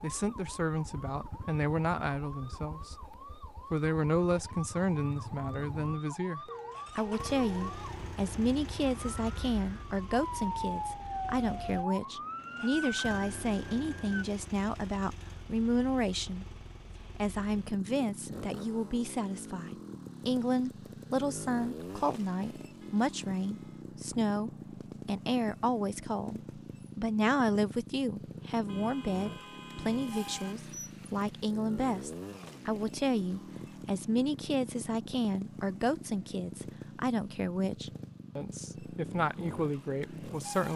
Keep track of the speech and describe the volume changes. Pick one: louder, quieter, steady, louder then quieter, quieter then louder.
steady.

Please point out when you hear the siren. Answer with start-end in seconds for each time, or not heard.
0.0-14.2.